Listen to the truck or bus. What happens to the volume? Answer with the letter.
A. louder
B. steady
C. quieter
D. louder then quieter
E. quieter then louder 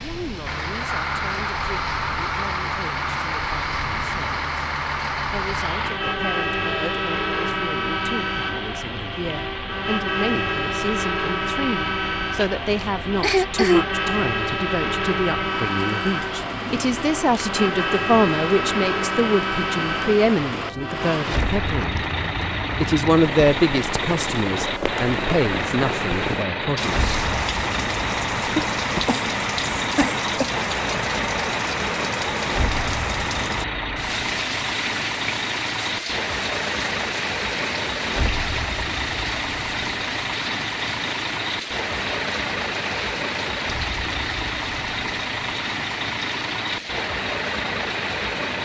B.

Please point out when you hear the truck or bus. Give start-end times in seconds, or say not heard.
0.0-48.5.